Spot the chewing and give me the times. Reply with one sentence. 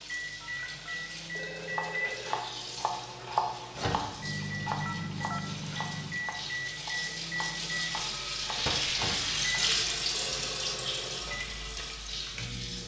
The chewing can't be heard in this clip.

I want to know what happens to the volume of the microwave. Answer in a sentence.
The loudness of the microwave goes down.